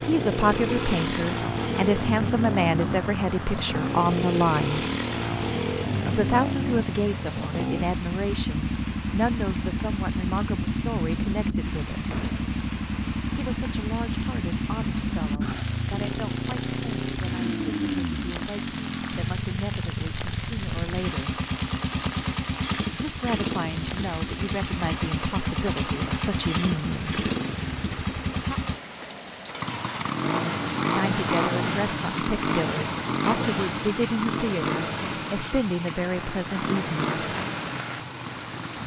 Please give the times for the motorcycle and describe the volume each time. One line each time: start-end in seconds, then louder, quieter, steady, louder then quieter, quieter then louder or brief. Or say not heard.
0.0-38.8 steady.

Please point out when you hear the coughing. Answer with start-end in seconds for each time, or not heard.
not heard.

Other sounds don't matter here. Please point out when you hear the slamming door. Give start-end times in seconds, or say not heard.
12.1-12.5.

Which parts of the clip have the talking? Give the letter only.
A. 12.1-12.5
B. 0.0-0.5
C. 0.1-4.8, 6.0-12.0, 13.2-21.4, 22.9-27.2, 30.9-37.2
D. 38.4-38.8
C.